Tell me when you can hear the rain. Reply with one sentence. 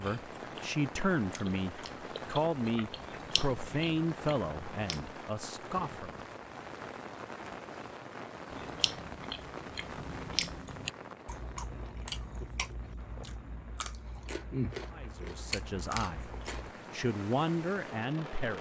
The rain can be heard from 0.0 to 18.5 s.